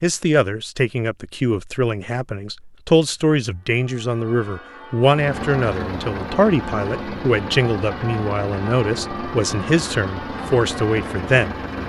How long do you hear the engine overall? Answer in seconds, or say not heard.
7 s.